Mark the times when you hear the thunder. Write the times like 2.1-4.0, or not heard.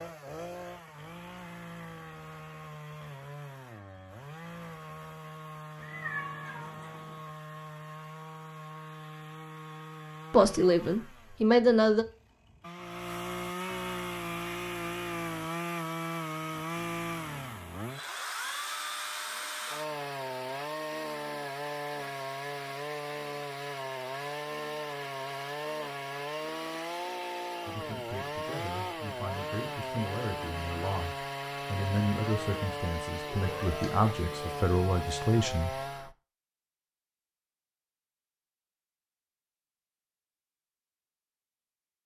not heard.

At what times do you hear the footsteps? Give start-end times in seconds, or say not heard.
not heard.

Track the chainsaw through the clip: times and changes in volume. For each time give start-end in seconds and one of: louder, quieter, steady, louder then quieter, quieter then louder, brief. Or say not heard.
0.0-36.1 louder.